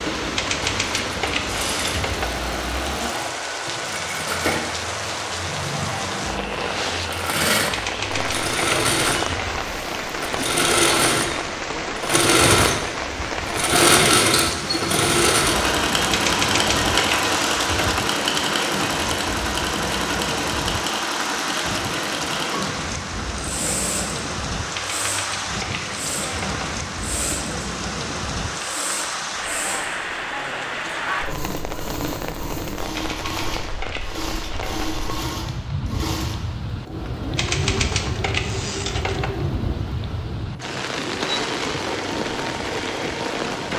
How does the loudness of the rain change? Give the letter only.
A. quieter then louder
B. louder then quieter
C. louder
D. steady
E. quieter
D.